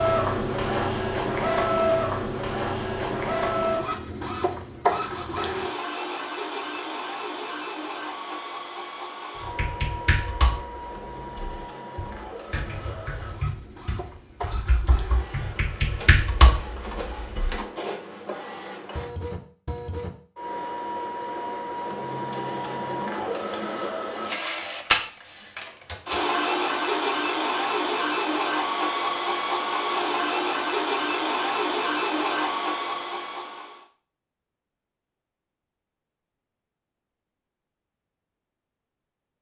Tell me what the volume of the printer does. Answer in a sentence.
The volume of the printer goes down, then up.